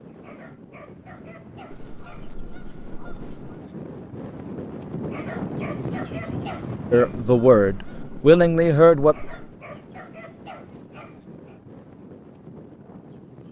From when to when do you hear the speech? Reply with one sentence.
You can hear the speech from 6.9 to 9.2 s.